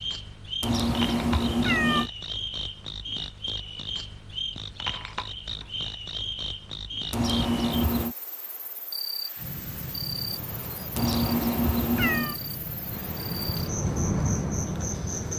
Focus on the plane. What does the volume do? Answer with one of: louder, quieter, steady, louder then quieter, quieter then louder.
louder.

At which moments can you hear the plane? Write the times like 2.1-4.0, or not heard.
9.3-15.3.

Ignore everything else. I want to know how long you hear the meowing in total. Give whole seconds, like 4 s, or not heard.
4 s.